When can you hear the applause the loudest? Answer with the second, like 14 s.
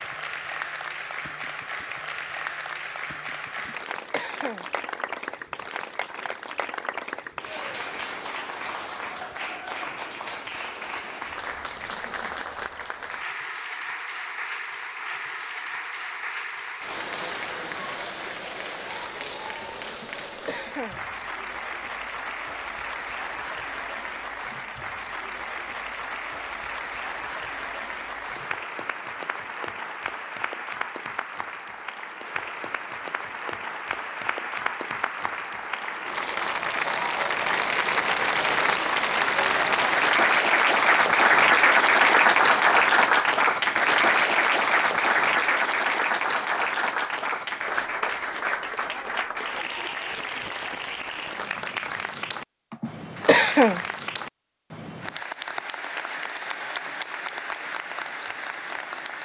42 s.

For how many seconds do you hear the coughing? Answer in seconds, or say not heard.
3 s.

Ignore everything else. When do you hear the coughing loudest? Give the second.
53 s.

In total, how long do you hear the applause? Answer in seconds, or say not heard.
59 s.